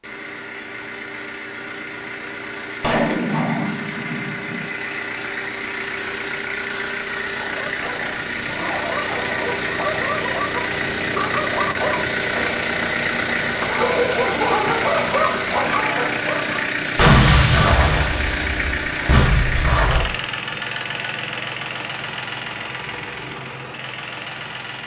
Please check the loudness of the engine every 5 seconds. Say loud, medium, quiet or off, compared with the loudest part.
medium, loud, loud, loud, medium.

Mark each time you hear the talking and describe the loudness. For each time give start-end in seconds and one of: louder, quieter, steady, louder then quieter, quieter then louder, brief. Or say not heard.
not heard.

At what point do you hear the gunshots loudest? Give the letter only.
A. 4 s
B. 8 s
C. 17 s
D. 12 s
C.